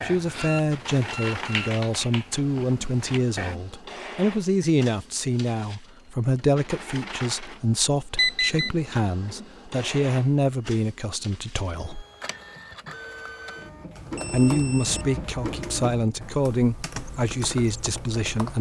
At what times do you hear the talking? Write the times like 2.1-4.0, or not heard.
0.0-12.1, 14.3-18.5.